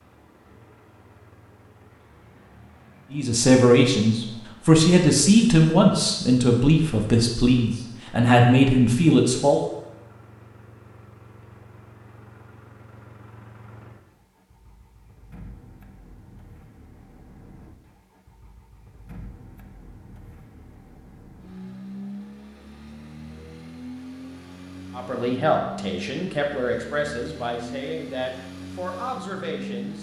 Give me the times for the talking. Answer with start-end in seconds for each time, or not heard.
3.1-9.6, 24.9-29.9.